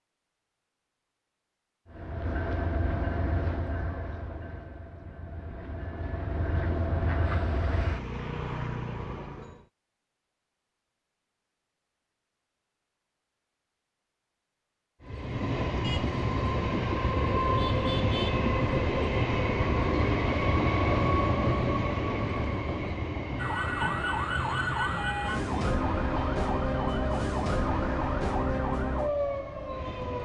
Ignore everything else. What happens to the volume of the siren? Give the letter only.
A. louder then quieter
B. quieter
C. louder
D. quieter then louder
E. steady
E.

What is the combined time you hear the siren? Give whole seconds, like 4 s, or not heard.
7 s.